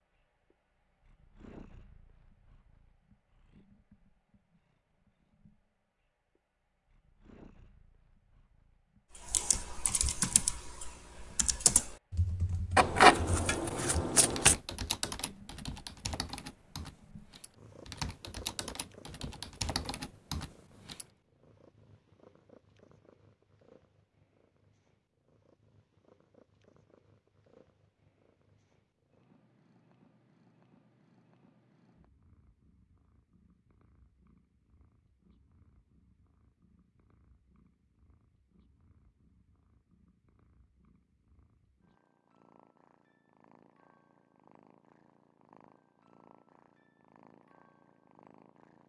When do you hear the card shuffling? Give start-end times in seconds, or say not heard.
12.8-14.6.